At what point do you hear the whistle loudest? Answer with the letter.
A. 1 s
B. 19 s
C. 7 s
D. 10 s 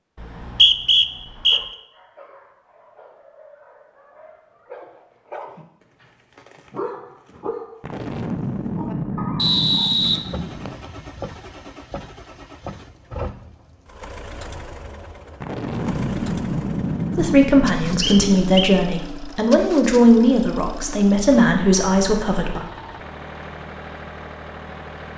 A.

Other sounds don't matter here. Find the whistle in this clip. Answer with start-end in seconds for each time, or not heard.
0.2-1.6, 9.3-10.8, 18.0-18.7.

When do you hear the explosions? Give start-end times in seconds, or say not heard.
7.8-10.8, 15.4-18.2.